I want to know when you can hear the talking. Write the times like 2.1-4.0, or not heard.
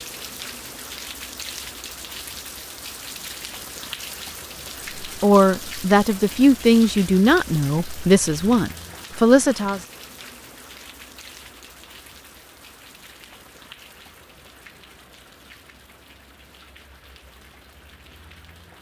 5.0-9.8.